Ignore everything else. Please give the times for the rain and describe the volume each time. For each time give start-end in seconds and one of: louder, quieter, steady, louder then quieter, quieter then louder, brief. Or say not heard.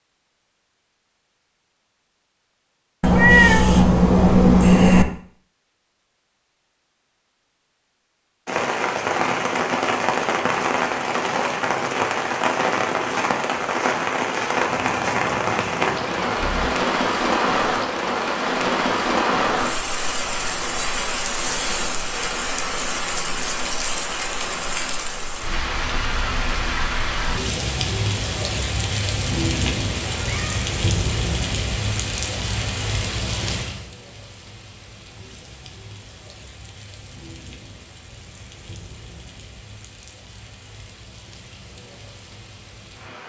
8.4-43.2 quieter.